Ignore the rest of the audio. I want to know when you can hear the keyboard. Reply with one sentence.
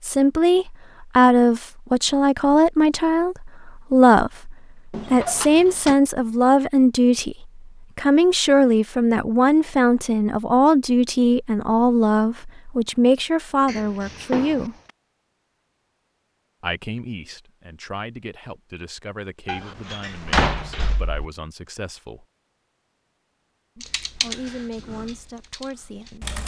The keyboard can be heard from 23.8 to 26.4 s.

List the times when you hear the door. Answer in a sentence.
You can hear the door from 4.9 to 6.0 s, from 13.7 to 14.9 s and from 19.4 to 21.2 s.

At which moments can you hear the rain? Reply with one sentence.
You can't hear the rain here.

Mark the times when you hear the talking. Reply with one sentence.
The talking can be heard from 0.0 to 14.8 s, from 16.6 to 22.2 s and from 23.8 to 26.4 s.